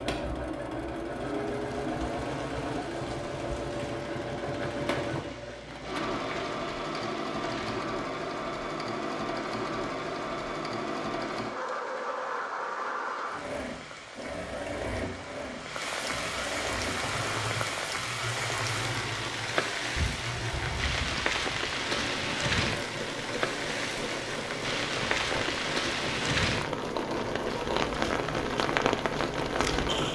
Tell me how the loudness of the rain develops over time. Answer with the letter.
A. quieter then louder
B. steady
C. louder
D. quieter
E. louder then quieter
C.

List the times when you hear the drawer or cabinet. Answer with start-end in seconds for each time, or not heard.
19.9-21.2.